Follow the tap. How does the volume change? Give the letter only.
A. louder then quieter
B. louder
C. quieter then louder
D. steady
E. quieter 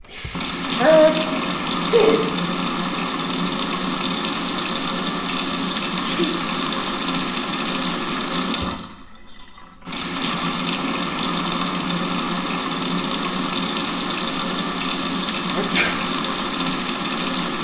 D.